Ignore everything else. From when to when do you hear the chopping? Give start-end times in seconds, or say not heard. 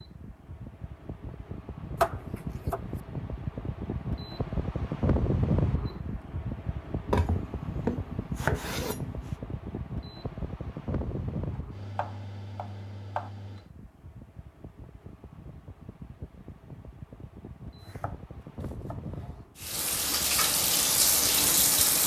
1.9-3.0, 7.1-9.3, 11.6-13.3, 17.8-19.4.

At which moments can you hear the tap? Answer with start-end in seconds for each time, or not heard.
19.6-22.0.